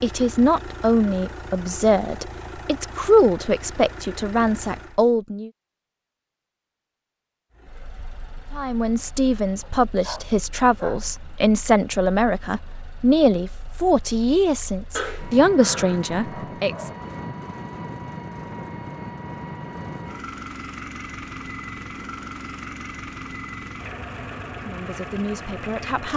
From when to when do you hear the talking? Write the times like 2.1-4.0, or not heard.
0.0-5.5, 8.5-16.9, 24.6-26.1.